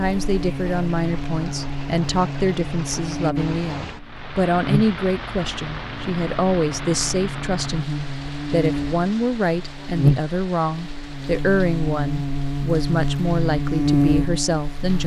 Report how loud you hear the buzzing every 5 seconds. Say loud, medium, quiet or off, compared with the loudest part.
medium, medium, loud.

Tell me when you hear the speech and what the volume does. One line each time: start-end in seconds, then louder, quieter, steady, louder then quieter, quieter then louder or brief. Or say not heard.
0.0-15.0 steady.